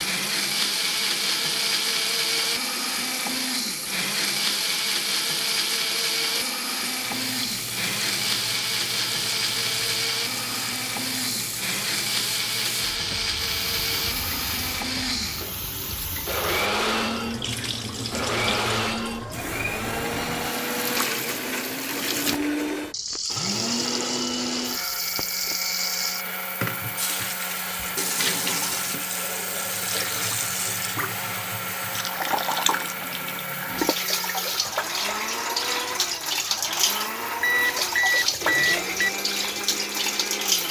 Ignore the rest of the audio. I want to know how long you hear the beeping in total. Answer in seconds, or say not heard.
2 s.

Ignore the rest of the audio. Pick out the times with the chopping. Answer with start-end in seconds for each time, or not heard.
not heard.